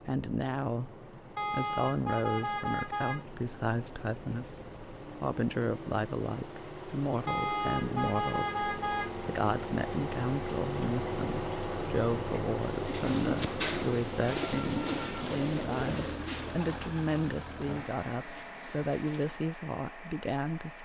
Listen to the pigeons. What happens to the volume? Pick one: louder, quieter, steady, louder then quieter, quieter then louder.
quieter.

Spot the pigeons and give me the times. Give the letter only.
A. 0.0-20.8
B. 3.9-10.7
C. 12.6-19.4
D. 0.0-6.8
C.